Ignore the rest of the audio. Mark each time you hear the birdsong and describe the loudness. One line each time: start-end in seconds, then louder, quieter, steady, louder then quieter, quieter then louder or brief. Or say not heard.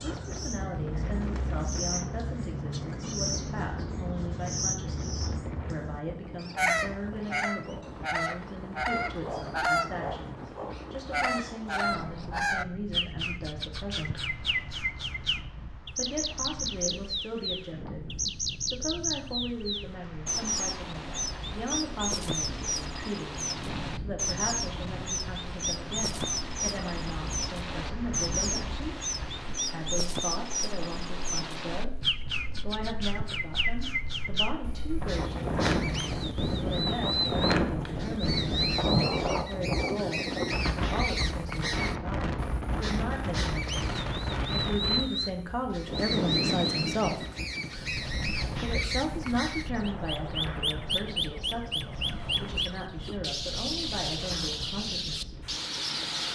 0.0-56.3 steady.